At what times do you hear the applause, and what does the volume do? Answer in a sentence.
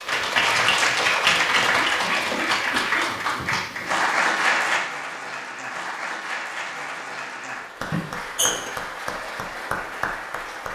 The applause can be heard from 0.0 to 10.7 s, getting quieter.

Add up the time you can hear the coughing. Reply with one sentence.
You can hear the coughing for 3 seconds altogether.